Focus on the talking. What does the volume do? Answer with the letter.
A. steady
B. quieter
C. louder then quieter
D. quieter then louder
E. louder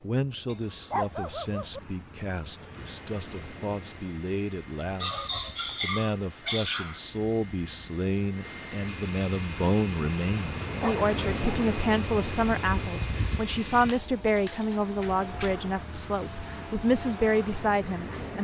E.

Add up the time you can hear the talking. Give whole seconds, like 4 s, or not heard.
18 s.